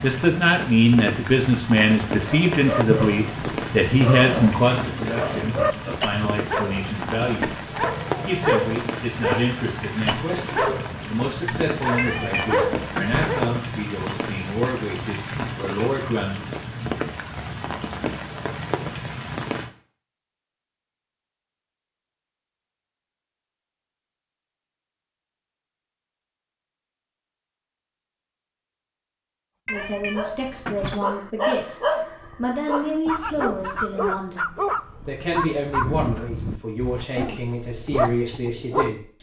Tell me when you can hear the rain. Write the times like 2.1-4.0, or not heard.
0.0-19.7.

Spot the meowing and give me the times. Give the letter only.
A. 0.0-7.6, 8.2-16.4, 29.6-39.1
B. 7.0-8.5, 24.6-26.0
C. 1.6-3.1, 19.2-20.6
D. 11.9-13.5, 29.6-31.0
D.